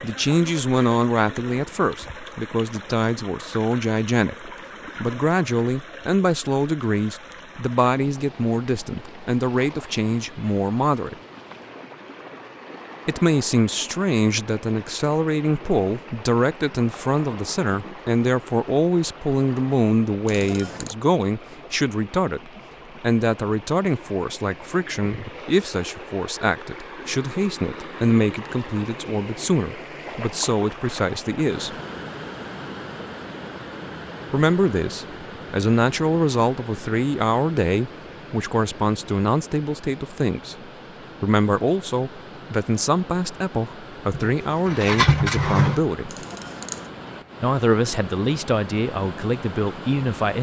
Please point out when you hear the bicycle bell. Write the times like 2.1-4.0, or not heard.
20.2-20.9, 46.0-46.9.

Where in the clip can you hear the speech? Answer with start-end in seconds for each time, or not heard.
0.0-11.2, 13.1-31.8, 34.3-40.5, 41.2-46.2, 47.4-50.3.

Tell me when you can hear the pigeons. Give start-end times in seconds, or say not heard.
44.2-45.9.